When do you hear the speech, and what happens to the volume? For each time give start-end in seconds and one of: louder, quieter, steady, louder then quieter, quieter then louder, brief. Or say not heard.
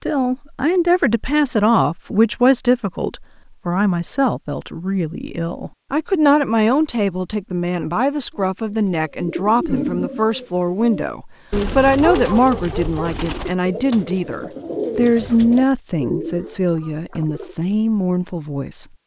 0.0-18.9 steady.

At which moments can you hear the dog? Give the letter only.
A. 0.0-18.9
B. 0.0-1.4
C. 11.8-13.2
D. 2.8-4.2
C.